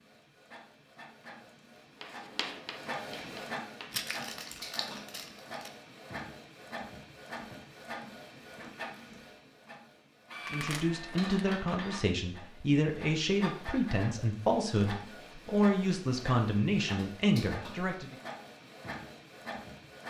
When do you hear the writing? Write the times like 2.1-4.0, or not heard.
2.0-4.0.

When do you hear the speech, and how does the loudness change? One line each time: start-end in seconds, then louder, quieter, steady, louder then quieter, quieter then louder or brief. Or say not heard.
10.5-18.1 steady.